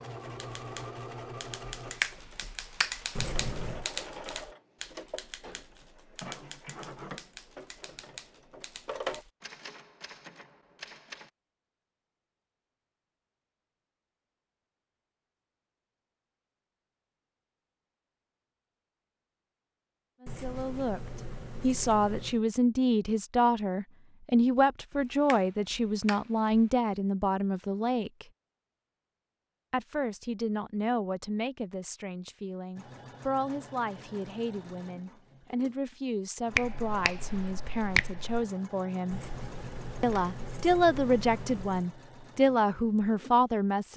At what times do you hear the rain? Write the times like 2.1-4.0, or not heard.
not heard.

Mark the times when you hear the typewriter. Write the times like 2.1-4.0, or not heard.
0.2-11.3.